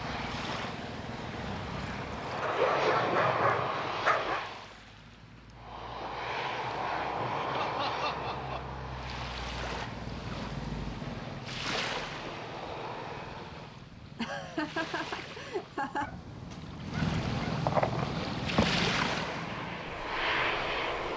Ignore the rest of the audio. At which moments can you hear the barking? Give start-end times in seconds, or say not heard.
2.4-4.5, 16.0-18.8.